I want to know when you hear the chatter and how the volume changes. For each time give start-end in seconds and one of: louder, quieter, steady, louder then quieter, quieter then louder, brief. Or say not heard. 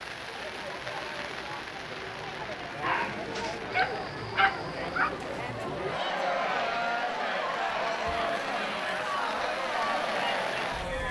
0.0-11.0 louder.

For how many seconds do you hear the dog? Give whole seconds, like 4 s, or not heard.
3 s.